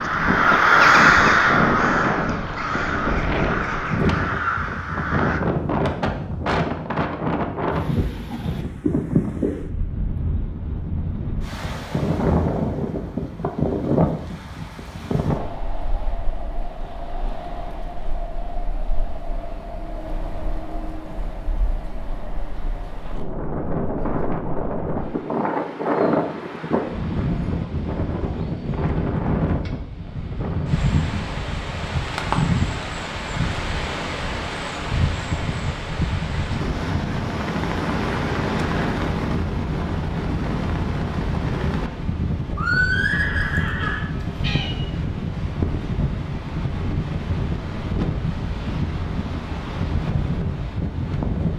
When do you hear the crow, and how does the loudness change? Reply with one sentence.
You can hear the crow from 0.0 to 5.4 s, getting quieter.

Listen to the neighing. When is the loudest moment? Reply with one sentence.
The loudest moment of the neighing is at 43 seconds.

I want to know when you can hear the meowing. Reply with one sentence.
The meowing can be heard from 43.4 to 44.8 s.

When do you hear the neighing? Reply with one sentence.
You can hear the neighing from 42.5 to 44.0 s.